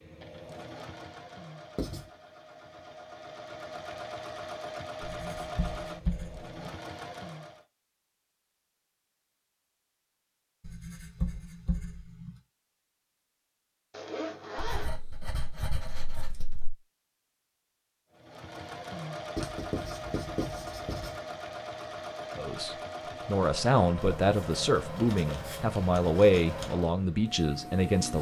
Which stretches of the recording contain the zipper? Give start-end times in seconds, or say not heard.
13.9-14.9.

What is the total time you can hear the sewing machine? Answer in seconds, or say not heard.
18 s.